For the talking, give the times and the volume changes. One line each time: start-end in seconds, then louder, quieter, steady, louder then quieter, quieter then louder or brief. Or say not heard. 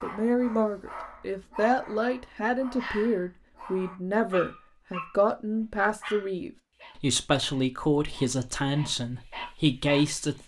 0.0-10.4 steady.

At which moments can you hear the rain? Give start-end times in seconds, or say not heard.
not heard.